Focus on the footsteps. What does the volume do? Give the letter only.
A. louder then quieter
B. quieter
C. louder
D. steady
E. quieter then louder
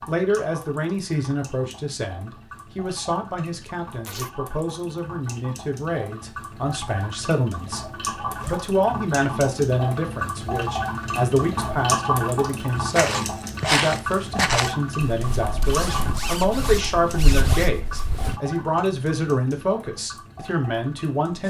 E.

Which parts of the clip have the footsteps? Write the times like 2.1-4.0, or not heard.
12.9-18.4.